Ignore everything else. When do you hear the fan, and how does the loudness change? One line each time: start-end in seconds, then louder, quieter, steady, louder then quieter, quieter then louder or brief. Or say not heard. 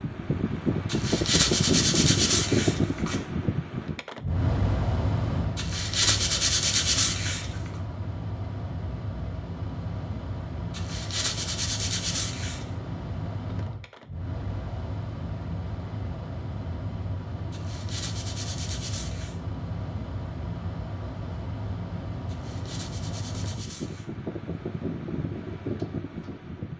0.0-26.7 quieter.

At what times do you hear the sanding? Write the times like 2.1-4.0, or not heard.
0.8-3.1, 5.5-7.7, 10.7-12.7, 17.5-19.4, 22.2-24.1.